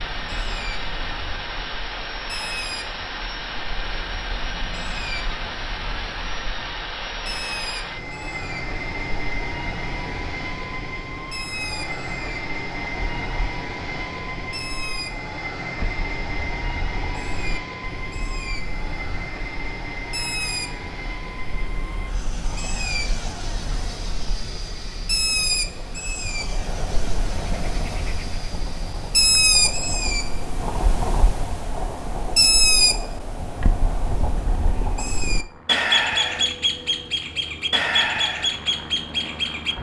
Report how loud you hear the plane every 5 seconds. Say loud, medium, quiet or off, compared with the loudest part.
loud, loud, loud, loud, medium, medium, medium, medium.